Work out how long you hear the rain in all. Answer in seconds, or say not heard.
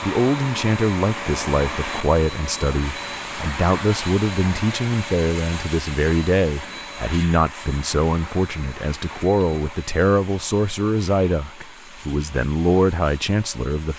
not heard.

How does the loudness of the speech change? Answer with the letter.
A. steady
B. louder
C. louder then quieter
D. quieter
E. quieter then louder
A.